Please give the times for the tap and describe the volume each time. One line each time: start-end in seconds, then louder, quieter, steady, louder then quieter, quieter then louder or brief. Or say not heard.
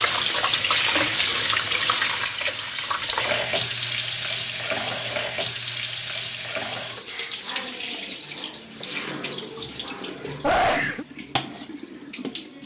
0.0-12.6 quieter.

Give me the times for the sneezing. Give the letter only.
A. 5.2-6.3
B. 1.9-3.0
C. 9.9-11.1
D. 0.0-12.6
C.